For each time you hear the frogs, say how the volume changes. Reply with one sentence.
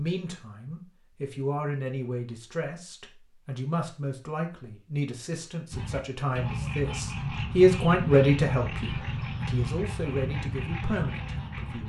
You can hear the frogs from 5.7 to 11.8 s, at a steady volume.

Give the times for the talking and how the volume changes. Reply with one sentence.
You can hear the talking from 0.0 to 11.8 s, getting louder then quieter.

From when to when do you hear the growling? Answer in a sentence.
The growling can't be heard in this clip.